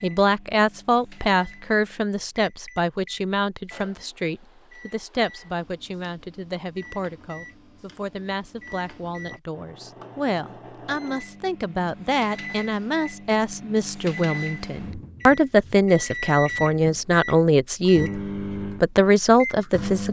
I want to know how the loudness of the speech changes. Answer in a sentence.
The volume of the speech goes down, then up.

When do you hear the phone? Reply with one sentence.
The phone can't be heard in this clip.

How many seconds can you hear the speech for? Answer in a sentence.
The speech can be heard for 20 seconds in total.